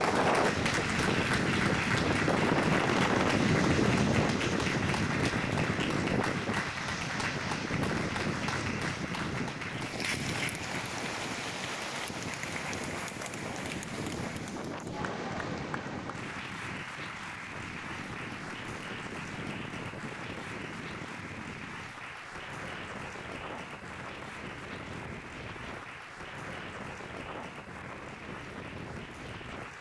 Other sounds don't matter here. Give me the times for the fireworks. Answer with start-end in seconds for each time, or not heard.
not heard.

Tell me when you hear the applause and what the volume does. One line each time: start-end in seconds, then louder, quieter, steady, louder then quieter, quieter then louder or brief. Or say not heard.
0.0-29.7 quieter.